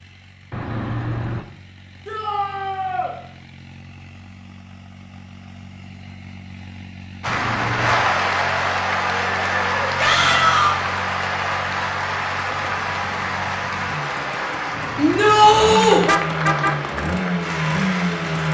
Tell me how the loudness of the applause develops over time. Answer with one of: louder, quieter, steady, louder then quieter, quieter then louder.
quieter.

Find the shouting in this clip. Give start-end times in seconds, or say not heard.
2.0-3.1, 9.9-10.7, 14.9-16.1.